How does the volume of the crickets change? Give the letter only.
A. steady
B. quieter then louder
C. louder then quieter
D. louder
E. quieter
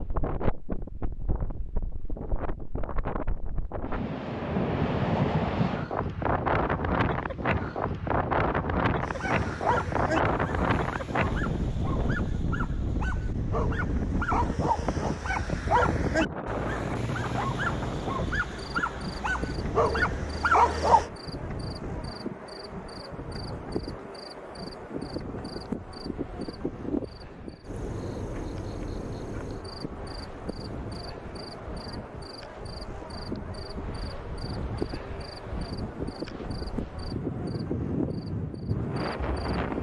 A.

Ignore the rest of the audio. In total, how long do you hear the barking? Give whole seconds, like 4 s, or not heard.
12 s.